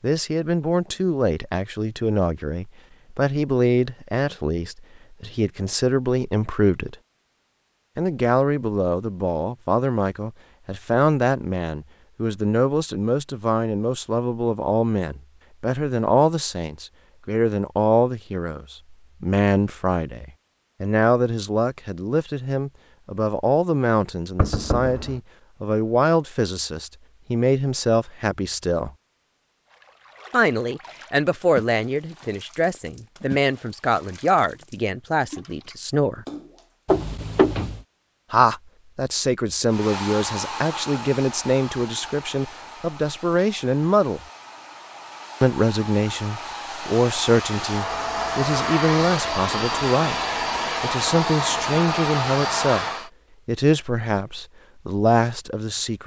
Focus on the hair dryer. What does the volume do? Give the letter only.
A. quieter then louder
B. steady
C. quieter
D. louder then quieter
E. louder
A.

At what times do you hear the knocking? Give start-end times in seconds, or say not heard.
24.4-25.1, 36.9-37.8.